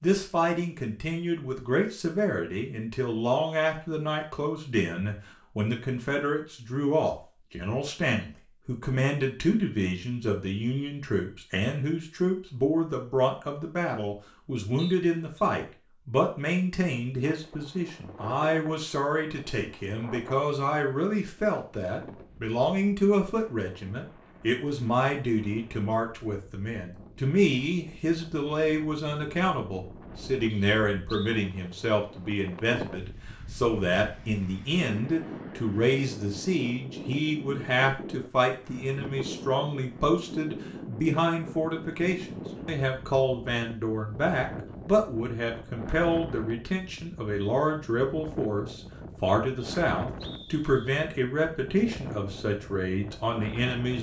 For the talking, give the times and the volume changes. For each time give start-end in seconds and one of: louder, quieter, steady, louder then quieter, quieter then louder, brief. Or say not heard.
0.0-53.9 steady.